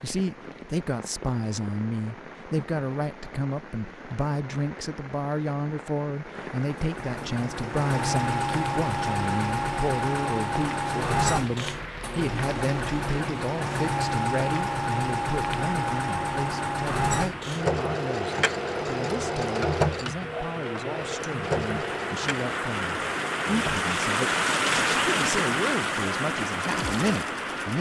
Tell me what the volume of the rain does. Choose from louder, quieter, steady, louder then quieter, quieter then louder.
louder.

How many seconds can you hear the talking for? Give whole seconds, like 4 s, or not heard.
28 s.